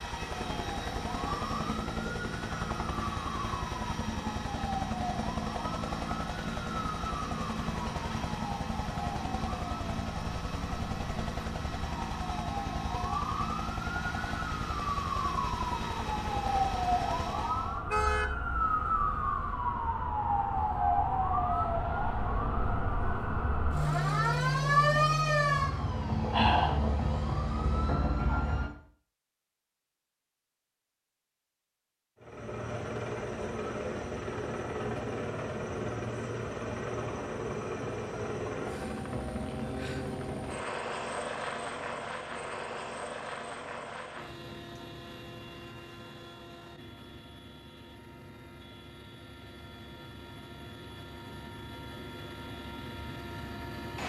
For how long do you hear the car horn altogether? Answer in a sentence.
The car horn can be heard for 2 seconds in total.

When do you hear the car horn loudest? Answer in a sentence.
The volume of the car horn peaks at 18 seconds.